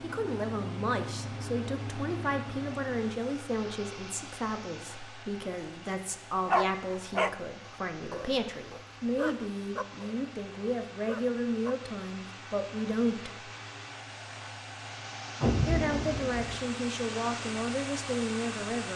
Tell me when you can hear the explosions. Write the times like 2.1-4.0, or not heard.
15.4-16.6.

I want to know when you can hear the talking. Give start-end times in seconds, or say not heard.
0.0-13.5, 15.7-18.9.